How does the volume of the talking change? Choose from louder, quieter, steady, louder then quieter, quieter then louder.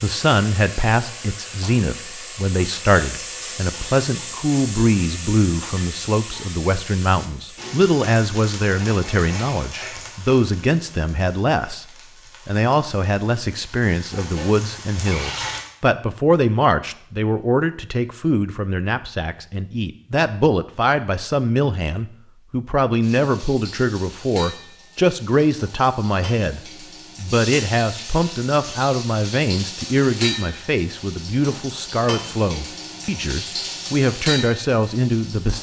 steady.